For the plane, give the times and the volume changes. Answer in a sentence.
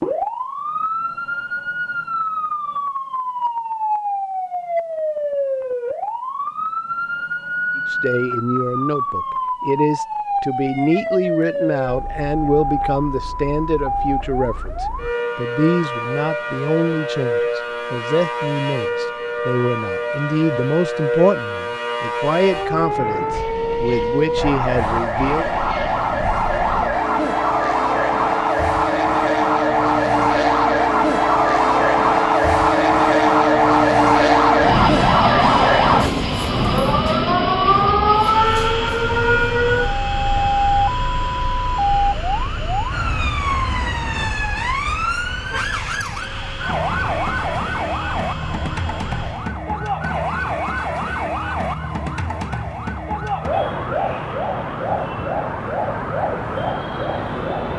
You can hear the plane from 22.8 to 49.5 s, getting louder then quieter.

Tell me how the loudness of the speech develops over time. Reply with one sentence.
The loudness of the speech stays about the same.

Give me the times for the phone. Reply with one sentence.
You can't hear the phone here.